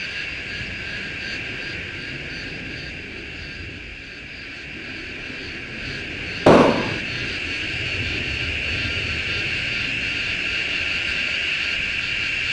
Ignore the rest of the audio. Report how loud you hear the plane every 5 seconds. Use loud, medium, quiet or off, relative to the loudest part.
medium, loud, loud.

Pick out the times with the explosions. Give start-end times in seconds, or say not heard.
6.5-7.0.